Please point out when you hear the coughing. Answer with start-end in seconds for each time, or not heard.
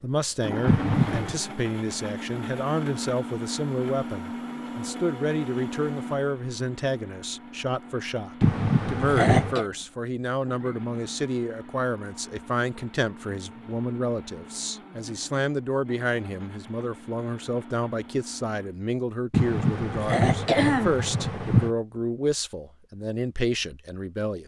0.7-1.4, 8.4-9.7, 19.3-21.7.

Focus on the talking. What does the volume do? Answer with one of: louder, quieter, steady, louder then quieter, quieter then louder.
steady.